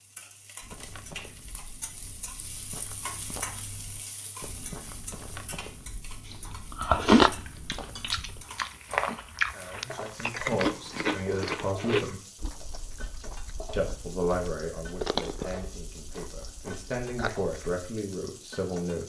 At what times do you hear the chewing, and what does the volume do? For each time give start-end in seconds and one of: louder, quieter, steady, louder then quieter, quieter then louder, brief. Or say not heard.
6.3-17.8 quieter.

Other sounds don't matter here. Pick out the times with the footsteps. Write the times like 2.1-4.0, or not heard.
0.6-10.3.